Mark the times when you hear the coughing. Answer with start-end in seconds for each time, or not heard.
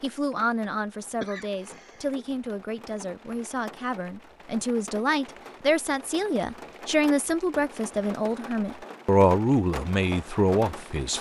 1.2-2.2.